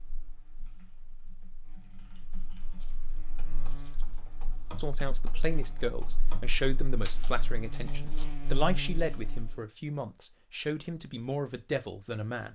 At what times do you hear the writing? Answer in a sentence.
The writing can't be heard in this clip.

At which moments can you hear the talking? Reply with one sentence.
The talking can be heard from 4.8 to 12.5 s.